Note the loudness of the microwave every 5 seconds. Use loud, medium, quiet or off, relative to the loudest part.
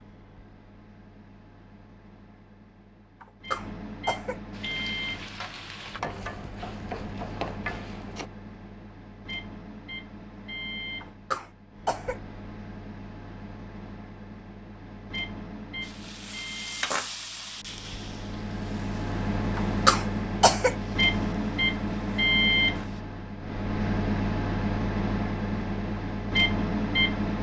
quiet, quiet, quiet, medium, loud, loud.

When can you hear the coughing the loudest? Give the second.
20 s.